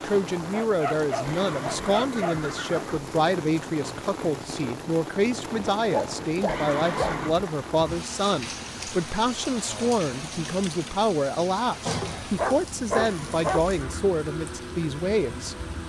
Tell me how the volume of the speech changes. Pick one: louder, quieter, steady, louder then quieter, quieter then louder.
steady.